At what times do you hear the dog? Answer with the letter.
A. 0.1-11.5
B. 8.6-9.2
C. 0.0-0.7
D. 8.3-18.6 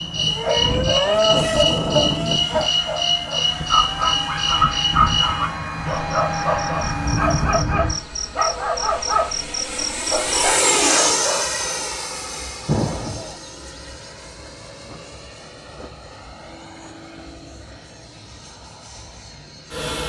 A.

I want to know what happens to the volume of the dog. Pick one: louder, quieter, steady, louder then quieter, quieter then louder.
steady.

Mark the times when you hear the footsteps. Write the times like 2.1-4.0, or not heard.
not heard.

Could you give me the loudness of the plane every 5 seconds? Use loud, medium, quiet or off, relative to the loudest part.
loud, loud, loud, quiet.